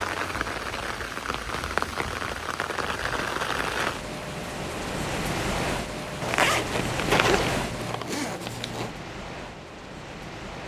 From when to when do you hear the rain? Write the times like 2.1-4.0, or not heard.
0.0-10.6.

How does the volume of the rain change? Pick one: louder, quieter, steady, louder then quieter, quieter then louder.
quieter.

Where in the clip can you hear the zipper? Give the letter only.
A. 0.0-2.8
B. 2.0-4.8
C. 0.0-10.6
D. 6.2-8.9
D.